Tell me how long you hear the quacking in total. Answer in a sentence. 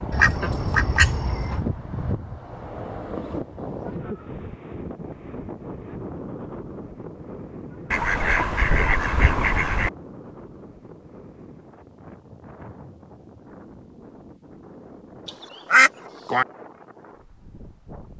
You can hear the quacking for 5 seconds altogether.